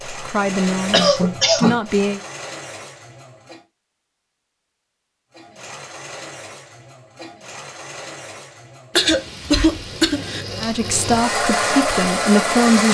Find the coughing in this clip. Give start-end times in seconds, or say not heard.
0.9-1.8, 8.9-10.4.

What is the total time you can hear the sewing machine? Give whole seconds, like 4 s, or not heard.
11 s.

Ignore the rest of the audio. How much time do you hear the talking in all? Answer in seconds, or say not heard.
4 s.